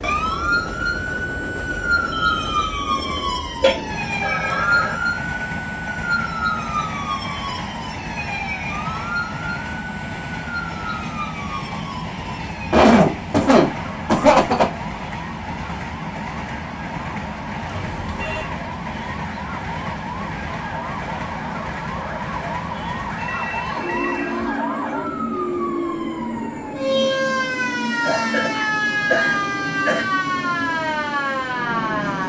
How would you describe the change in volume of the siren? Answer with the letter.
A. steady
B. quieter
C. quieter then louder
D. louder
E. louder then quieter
C.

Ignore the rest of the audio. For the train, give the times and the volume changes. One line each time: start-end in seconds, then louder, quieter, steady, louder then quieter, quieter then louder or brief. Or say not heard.
0.0-32.2 steady.